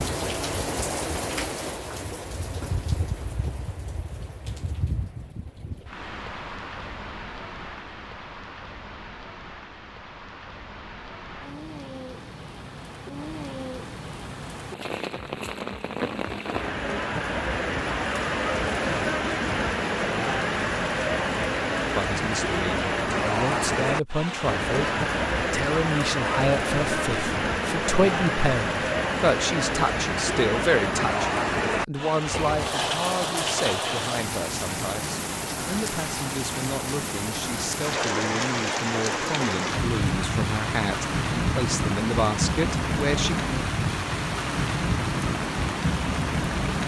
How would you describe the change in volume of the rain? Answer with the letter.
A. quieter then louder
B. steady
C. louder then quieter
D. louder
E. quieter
D.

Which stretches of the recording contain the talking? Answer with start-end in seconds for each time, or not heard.
21.9-43.4.